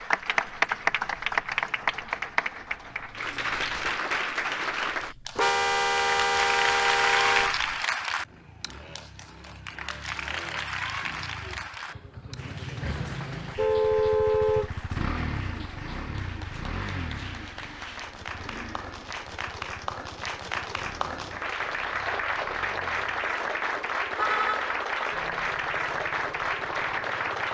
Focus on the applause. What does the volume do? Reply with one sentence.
The volume of the applause goes down, then up.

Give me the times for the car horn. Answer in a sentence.
You can hear the car horn from 5.3 to 7.6 s, from 13.6 to 14.7 s and from 23.8 to 24.8 s.